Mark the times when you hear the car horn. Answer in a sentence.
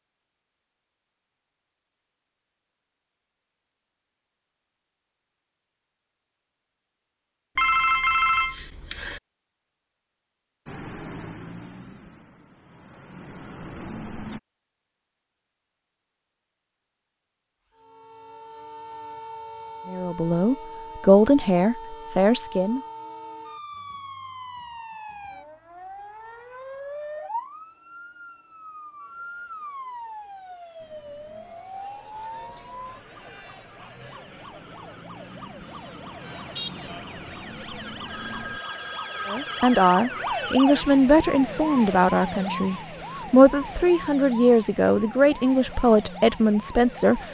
The car horn can't be heard in this clip.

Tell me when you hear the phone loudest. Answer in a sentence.
The loudest moment of the phone is at 8 seconds.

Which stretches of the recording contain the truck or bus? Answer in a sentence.
The truck or bus can be heard from 10.7 to 14.4 s and from 30.8 to 38.6 s.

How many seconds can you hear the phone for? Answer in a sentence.
The phone can be heard for 4 seconds in total.